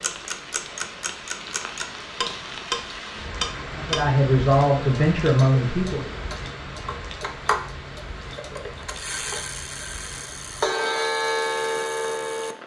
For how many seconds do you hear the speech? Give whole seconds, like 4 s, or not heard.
2 s.